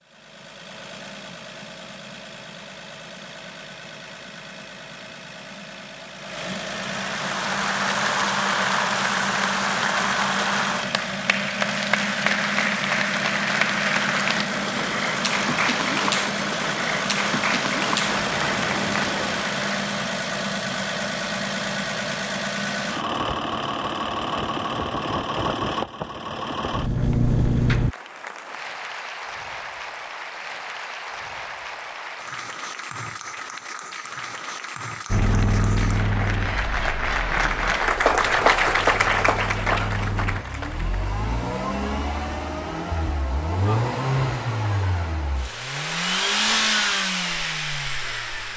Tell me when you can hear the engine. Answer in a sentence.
You can hear the engine from 0.0 to 27.9 s and from 35.1 to 48.5 s.